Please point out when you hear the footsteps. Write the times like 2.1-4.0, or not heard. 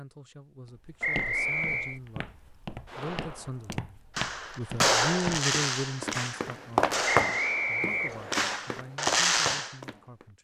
1.1-10.2.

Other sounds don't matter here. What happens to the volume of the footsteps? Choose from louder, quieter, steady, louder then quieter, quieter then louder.
louder then quieter.